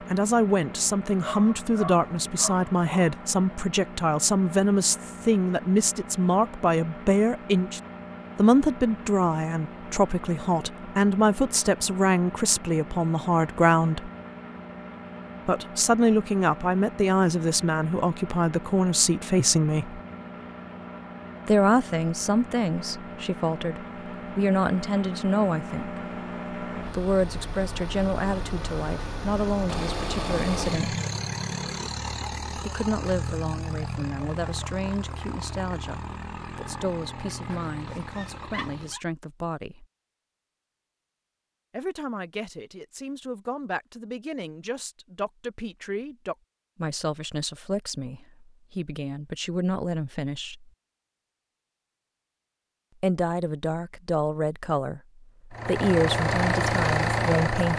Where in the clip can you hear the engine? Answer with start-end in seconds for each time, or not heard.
0.0-39.0, 55.5-57.7.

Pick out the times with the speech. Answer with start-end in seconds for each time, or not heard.
0.1-14.1, 15.4-20.0, 21.4-30.9, 32.5-39.9, 41.7-50.7, 53.0-57.7.